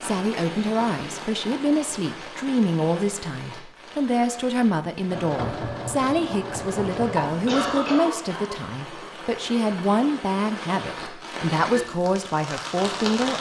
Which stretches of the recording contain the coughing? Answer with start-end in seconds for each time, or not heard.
7.5-9.0.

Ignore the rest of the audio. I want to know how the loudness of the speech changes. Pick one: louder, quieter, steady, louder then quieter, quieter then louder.
steady.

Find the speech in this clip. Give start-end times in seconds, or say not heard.
0.0-13.3.